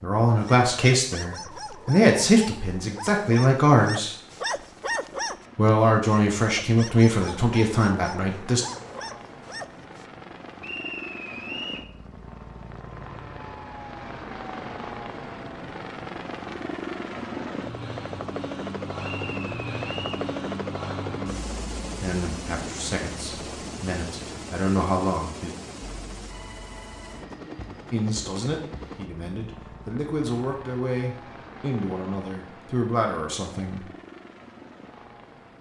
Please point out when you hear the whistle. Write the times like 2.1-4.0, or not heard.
10.6-11.9, 19.0-20.2.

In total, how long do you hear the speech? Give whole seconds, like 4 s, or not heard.
17 s.